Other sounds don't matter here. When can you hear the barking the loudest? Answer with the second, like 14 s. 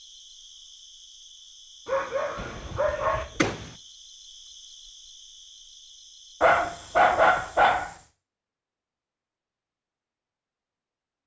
7 s.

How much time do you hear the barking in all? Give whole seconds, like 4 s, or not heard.
3 s.